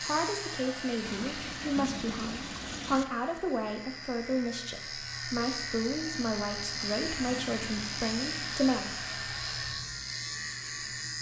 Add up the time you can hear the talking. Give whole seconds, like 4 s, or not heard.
9 s.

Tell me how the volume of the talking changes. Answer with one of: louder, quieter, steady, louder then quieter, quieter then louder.
steady.